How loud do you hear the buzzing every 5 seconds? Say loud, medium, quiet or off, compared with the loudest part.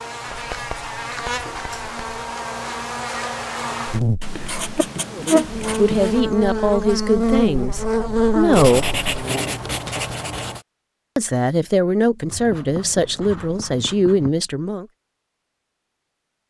medium, loud, off, off.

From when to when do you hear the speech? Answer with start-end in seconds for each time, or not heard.
5.1-8.8, 11.2-14.8.